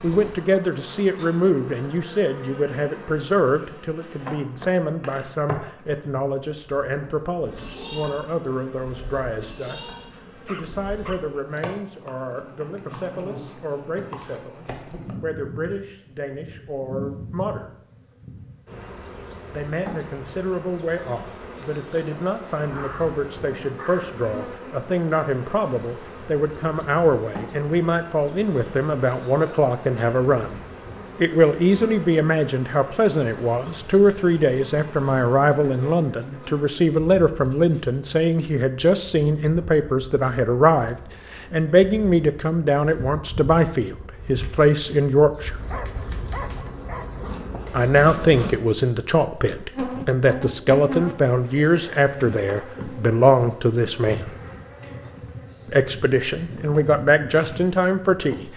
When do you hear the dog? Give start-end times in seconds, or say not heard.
10.4-11.4, 22.6-24.3, 45.5-47.5.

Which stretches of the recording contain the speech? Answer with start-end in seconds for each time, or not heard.
0.0-17.7, 19.5-45.6, 47.7-54.3, 55.6-58.5.